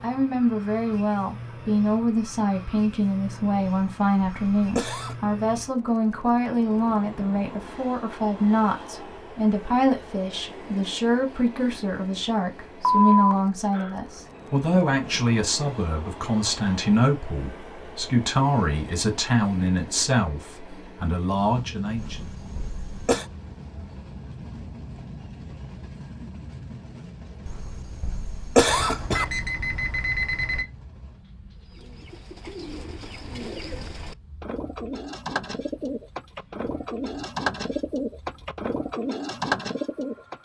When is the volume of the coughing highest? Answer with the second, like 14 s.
29 s.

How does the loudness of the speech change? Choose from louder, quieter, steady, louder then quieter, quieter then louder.
steady.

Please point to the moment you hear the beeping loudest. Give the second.
13 s.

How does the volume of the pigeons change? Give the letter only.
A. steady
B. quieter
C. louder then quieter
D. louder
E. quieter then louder
D.